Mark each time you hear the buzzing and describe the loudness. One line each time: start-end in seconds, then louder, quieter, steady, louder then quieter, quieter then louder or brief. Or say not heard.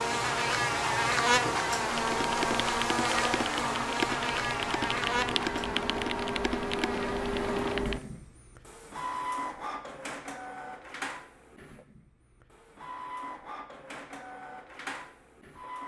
0.0-8.2 quieter.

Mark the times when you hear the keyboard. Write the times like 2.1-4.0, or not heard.
1.9-8.1.